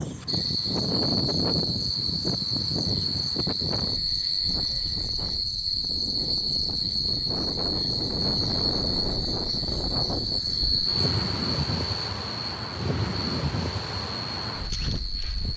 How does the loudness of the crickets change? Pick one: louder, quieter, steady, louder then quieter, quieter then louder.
quieter.